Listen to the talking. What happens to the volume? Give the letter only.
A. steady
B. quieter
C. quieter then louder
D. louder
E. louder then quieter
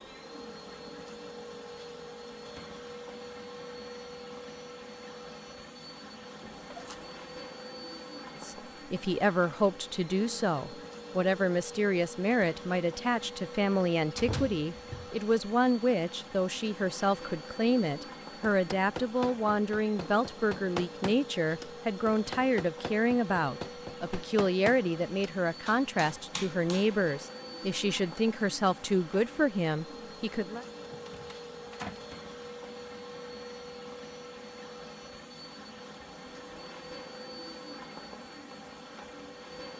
A.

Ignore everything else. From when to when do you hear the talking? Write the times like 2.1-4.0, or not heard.
8.4-30.6.